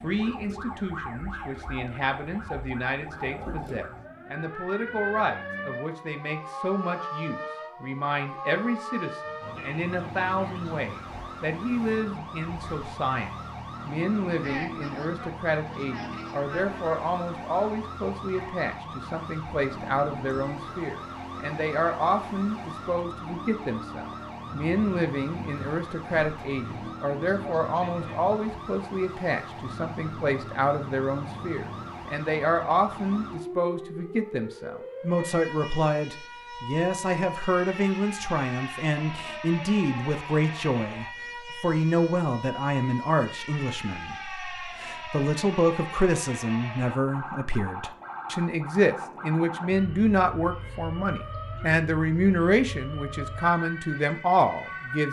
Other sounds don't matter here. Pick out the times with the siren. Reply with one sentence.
You can hear the siren from 0.0 to 55.0 s.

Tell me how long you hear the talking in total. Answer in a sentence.
You can hear the talking for 55 seconds altogether.